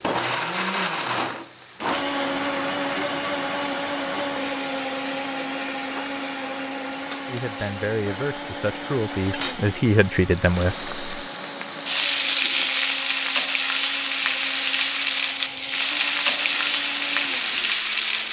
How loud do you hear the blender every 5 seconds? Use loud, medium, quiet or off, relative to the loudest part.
loud, medium, quiet, quiet.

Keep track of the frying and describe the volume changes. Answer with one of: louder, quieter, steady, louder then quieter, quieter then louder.
louder.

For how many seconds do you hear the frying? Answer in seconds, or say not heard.
18 s.